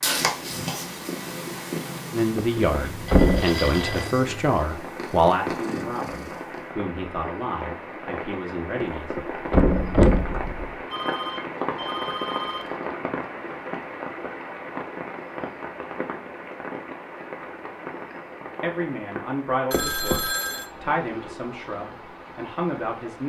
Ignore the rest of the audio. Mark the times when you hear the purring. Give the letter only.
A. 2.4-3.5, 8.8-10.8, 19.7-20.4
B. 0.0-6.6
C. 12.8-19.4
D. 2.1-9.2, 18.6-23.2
B.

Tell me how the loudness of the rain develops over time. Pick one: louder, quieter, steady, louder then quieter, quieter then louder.
louder then quieter.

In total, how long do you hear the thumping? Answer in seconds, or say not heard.
4 s.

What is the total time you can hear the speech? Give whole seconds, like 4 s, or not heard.
12 s.